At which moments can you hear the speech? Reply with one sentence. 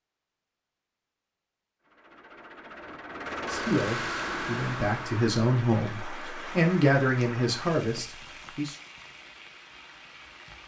The speech can be heard from 3.5 to 8.8 s.